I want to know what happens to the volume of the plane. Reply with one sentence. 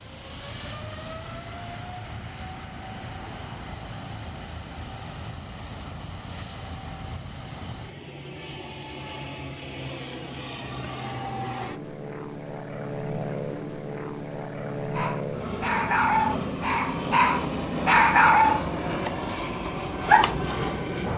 The volume of the plane goes up.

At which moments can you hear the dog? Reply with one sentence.
You can hear the dog from 14.9 to 20.6 s.